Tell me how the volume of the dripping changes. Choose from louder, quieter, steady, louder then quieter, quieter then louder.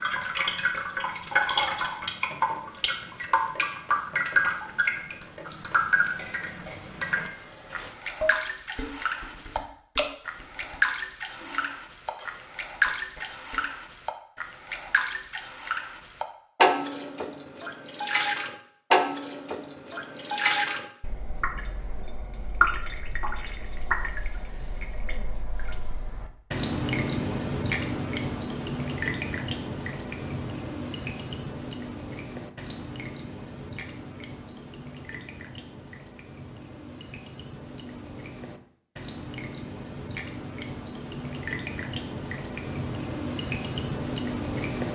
quieter.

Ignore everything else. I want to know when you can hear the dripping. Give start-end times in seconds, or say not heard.
0.0-44.8.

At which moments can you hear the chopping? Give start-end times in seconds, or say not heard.
not heard.